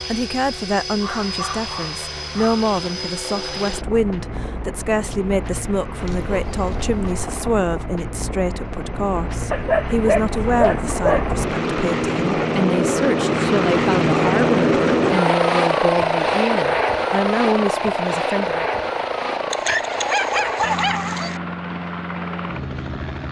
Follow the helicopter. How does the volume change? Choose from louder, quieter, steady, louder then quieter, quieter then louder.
louder then quieter.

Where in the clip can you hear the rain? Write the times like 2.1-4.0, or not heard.
not heard.